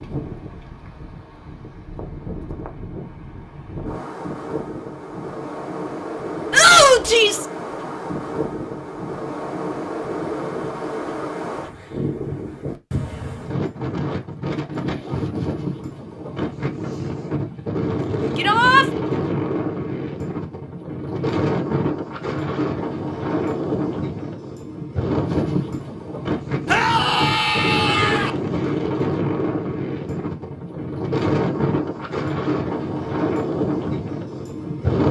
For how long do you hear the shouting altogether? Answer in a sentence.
You can hear the shouting for 3 seconds altogether.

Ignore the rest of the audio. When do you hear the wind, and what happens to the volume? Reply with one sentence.
You can hear the wind from 0.0 to 35.0 s, getting louder.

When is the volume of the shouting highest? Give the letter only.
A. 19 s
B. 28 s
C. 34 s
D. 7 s
D.